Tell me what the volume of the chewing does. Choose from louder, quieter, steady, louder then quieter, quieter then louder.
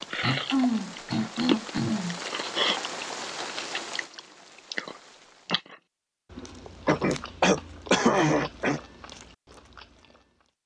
quieter.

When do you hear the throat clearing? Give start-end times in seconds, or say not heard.
0.2-2.2, 6.3-8.8.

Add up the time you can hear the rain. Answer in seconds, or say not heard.
6 s.